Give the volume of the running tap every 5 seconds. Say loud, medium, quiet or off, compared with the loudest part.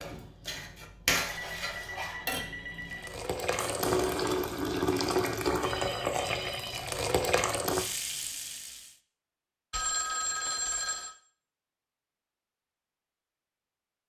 loud, loud, off.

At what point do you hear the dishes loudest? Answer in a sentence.
The volume of the dishes peaks at 1 second.